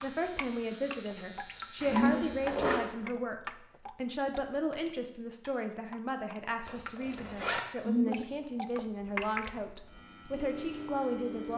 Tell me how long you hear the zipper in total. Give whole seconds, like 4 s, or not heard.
2 s.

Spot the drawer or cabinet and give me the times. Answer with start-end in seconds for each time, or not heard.
not heard.